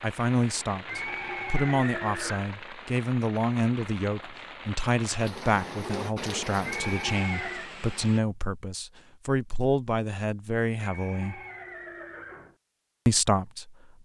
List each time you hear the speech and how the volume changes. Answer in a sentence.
You can hear the speech from 0.0 to 11.4 s, at a steady volume; and briefly from 13.1 to 13.8 s.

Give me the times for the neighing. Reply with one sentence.
You can hear the neighing from 0.8 to 2.5 s, from 6.6 to 7.8 s and from 10.8 to 12.6 s.